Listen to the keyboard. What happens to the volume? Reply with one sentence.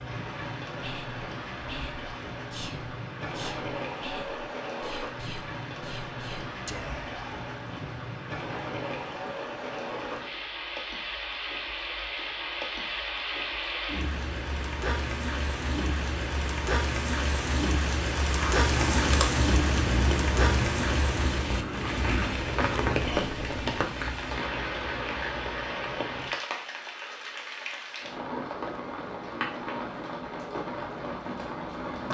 The volume of the keyboard goes down.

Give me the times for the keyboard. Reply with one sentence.
The keyboard can be heard from 18.2 to 23.9 s.